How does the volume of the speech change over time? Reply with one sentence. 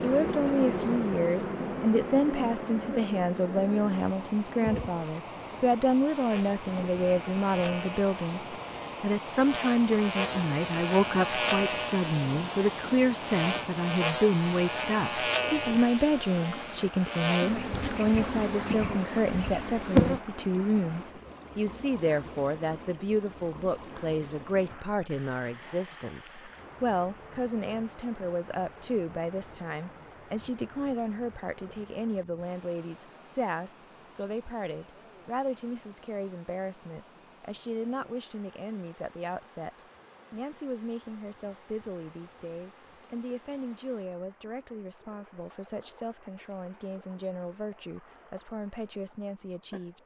The volume of the speech goes down.